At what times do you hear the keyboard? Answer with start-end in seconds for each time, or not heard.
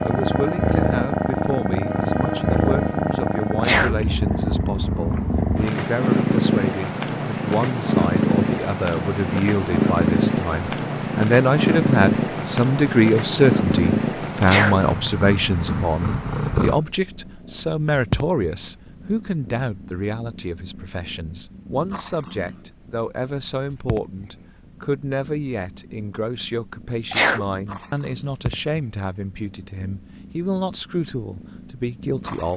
not heard.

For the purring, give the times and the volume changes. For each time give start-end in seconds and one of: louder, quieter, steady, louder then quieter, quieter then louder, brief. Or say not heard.
0.0-32.5 quieter.